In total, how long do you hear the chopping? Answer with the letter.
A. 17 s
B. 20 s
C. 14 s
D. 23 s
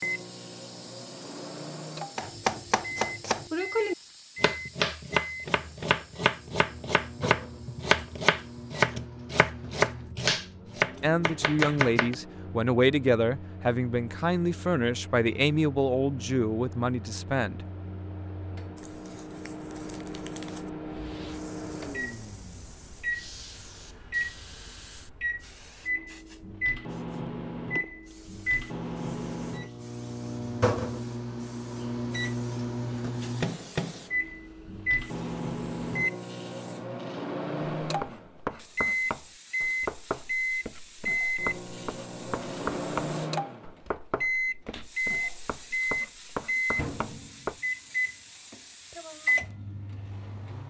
B.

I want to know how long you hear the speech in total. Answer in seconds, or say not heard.
7 s.